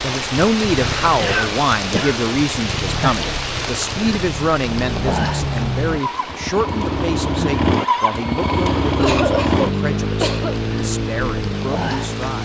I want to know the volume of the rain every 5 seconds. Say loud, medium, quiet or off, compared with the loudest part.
loud, medium, medium.